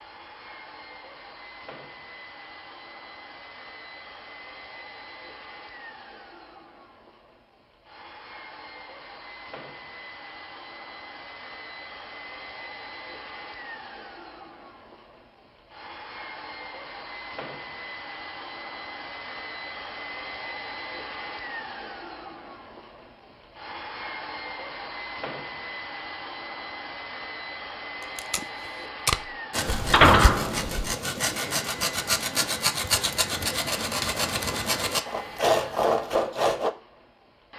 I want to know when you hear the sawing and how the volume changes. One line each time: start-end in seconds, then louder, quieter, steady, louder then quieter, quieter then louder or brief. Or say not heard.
29.5-36.7 louder.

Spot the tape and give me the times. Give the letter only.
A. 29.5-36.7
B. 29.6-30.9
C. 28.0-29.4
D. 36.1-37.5
C.